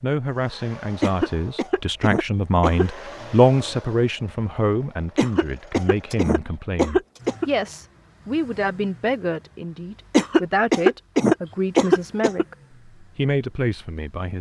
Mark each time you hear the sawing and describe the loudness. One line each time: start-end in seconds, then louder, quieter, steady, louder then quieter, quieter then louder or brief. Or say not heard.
not heard.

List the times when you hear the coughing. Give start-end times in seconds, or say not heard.
1.0-2.9, 5.2-7.5, 10.1-12.4.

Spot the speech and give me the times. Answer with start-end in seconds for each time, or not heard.
0.0-14.3.